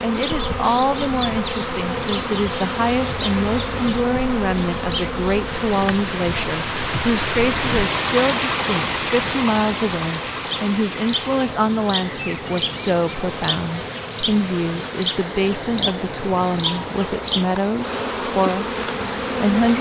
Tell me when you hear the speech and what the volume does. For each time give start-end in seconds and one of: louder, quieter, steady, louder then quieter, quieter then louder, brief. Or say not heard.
0.0-19.7 steady.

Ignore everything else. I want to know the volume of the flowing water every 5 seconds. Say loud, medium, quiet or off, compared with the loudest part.
medium, loud, medium, medium.